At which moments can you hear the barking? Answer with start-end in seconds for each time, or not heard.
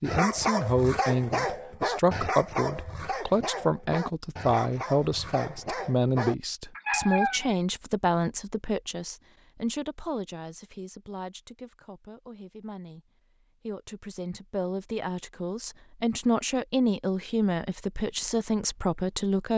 0.1-7.5.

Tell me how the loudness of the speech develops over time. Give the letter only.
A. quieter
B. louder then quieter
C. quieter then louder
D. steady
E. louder
C.